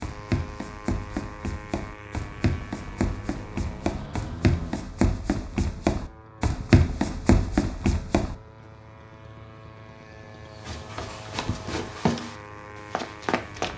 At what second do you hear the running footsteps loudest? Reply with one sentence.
The loudest moment of the running footsteps is at 7 seconds.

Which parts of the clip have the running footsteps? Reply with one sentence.
You can hear the running footsteps from 0.0 to 8.3 s and from 10.7 to 13.7 s.